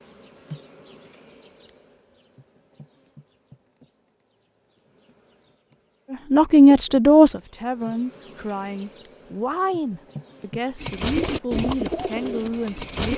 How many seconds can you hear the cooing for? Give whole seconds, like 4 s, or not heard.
2 s.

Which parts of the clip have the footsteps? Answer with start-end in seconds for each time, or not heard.
not heard.